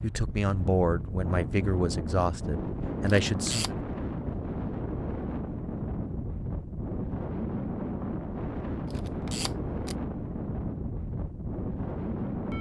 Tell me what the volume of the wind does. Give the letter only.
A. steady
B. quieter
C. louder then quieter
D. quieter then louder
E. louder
A.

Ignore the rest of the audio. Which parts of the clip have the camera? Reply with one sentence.
You can hear the camera from 3.0 to 3.7 s and from 8.9 to 9.9 s.